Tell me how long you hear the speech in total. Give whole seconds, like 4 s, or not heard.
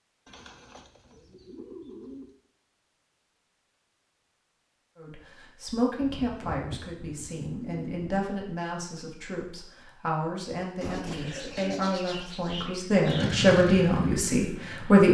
10 s.